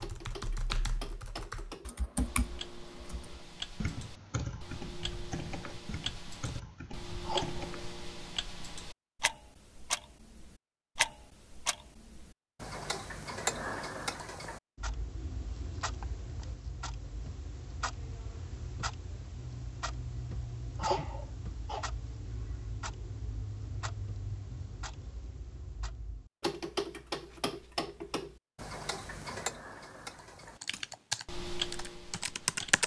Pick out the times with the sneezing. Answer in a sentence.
The sneezing can be heard from 7.2 to 7.7 s and from 20.8 to 21.9 s.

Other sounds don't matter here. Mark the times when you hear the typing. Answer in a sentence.
You can hear the typing from 0.0 to 7.9 s and from 30.6 to 32.8 s.